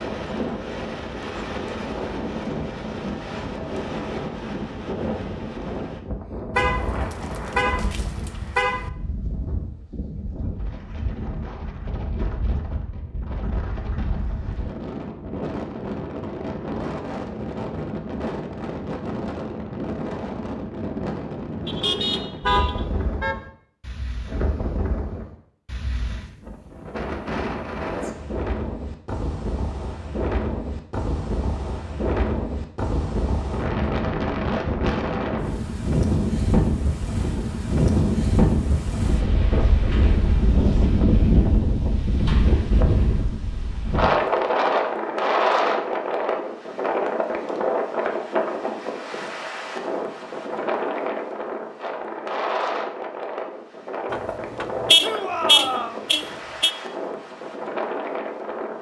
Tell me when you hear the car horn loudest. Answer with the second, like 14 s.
55 s.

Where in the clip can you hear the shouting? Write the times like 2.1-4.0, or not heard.
55.0-56.0.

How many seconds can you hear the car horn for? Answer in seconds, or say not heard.
7 s.